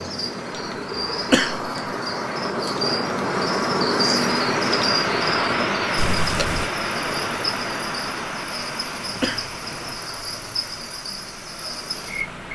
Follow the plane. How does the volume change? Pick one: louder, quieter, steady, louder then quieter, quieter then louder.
louder then quieter.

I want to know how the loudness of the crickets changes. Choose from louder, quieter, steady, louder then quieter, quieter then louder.
louder then quieter.